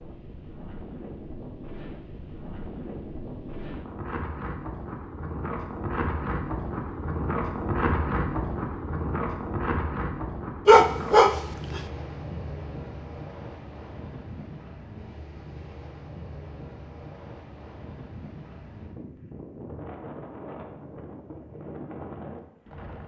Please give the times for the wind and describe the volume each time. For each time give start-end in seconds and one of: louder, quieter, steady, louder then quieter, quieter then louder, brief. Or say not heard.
0.0-23.0 louder then quieter.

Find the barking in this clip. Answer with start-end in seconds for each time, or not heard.
10.7-11.8.